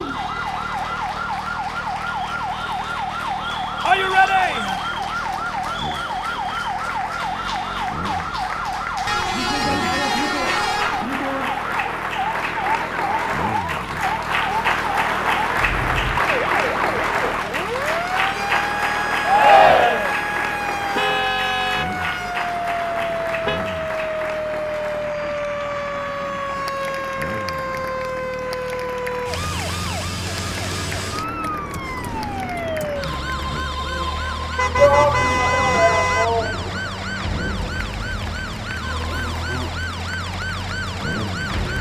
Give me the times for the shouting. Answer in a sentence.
The shouting can be heard from 3.8 to 4.8 s, from 19.2 to 20.1 s and from 34.8 to 36.8 s.